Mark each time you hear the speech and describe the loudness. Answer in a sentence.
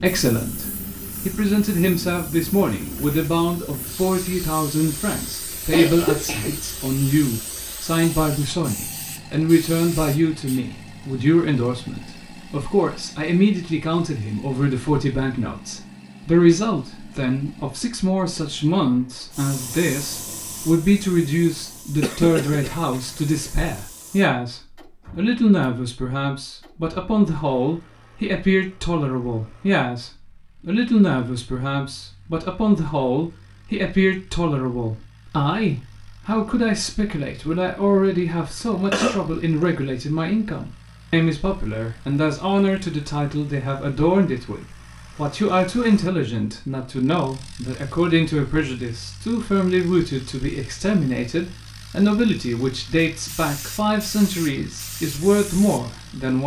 The speech can be heard from 0.0 to 56.4 s, at a steady volume.